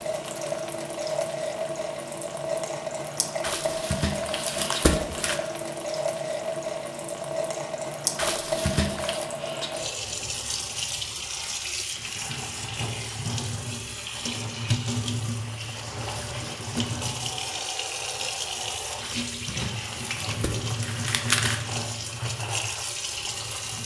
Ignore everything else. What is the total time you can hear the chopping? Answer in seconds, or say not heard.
not heard.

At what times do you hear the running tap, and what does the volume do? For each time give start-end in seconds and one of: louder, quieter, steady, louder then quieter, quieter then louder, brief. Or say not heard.
0.0-23.8 steady.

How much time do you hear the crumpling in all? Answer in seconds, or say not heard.
6 s.